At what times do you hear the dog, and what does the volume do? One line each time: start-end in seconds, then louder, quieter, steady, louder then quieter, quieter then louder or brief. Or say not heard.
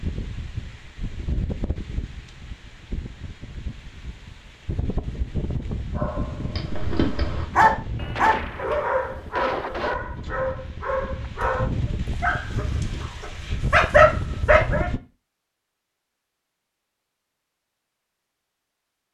6.0-14.8 quieter then louder.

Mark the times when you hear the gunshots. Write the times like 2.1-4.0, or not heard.
8.0-9.9.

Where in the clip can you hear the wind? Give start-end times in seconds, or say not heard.
0.0-15.0.